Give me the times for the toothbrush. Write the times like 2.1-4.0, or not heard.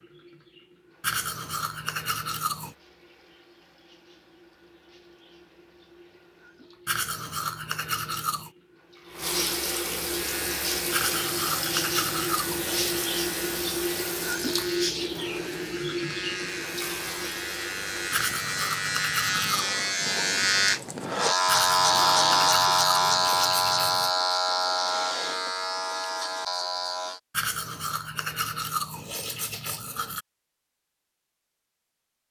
1.0-2.8, 6.8-8.5, 10.9-13.2, 18.1-19.7, 21.4-24.1, 27.3-30.2.